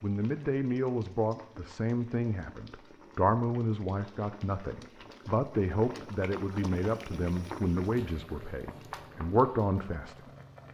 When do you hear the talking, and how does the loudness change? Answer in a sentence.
You can hear the talking from 0.0 to 10.3 s, at a steady volume.